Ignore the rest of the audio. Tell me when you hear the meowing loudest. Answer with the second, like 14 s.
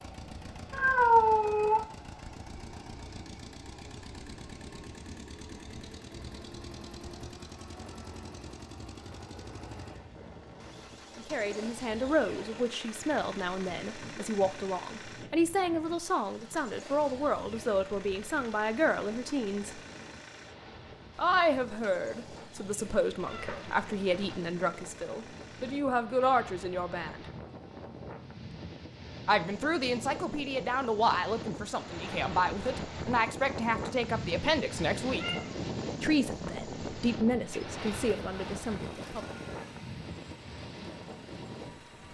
1 s.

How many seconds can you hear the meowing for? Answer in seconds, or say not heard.
3 s.